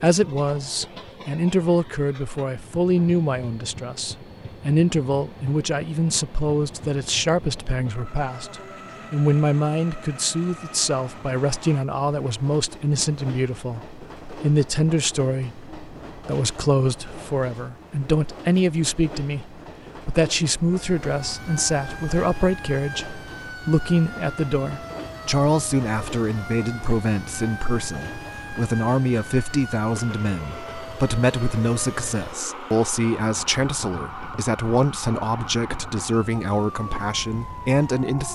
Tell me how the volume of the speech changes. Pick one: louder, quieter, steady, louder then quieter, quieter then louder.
steady.